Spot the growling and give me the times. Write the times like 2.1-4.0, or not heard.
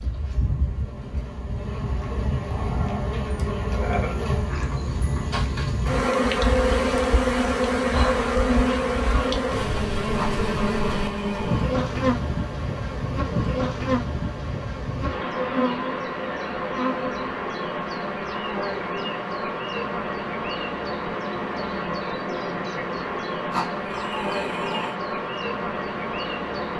2.5-4.2, 10.2-11.8, 23.5-24.9.